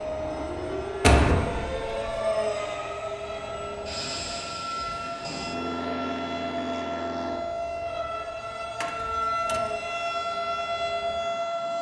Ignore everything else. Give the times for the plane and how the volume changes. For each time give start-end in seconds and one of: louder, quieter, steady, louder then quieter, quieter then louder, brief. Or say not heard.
0.0-11.7 quieter.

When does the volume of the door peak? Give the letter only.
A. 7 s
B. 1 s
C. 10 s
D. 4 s
B.